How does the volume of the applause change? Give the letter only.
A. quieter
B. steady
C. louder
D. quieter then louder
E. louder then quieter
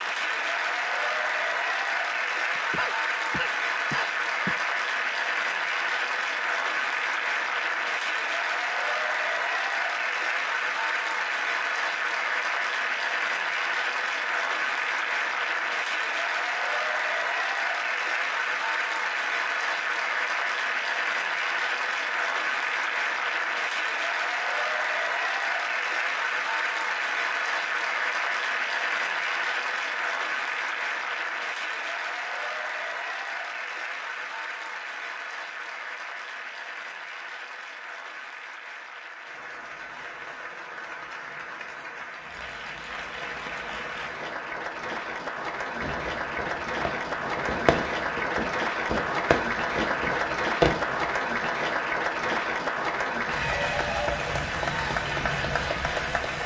D.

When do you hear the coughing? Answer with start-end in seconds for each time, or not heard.
2.5-4.5.